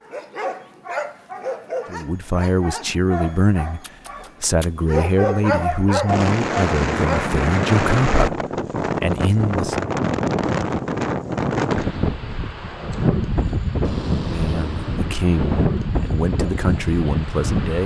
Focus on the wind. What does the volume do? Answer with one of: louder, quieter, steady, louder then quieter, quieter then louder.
steady.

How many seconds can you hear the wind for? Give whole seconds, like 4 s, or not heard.
12 s.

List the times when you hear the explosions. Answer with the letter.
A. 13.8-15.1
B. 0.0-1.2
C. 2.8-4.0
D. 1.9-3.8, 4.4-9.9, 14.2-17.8
A.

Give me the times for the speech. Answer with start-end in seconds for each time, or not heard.
1.9-3.8, 4.4-9.9, 14.2-17.8.